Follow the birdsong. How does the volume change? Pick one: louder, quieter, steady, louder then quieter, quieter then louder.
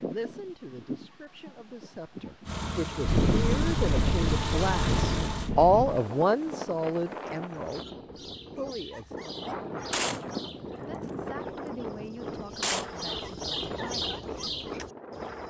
quieter then louder.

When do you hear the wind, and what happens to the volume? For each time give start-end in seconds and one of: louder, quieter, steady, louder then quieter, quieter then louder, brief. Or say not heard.
0.0-15.4 quieter.